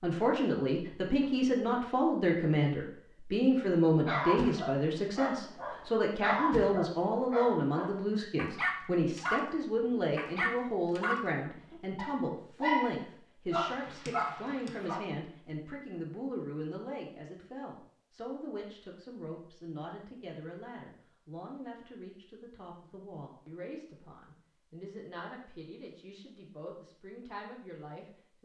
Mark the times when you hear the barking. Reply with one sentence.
You can hear the barking from 4.0 to 15.0 s.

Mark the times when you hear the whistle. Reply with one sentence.
You can't hear the whistle here.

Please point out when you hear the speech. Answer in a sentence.
The speech can be heard from 0.0 to 28.4 s.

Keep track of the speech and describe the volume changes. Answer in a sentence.
The volume of the speech goes down.